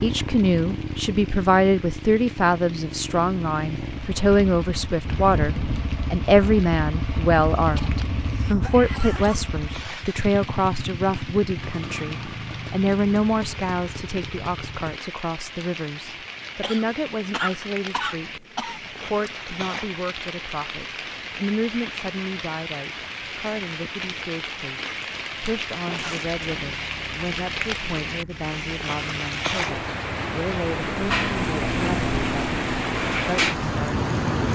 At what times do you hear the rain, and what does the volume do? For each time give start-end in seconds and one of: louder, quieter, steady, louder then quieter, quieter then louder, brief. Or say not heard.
0.0-34.4 louder.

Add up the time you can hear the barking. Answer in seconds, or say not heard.
not heard.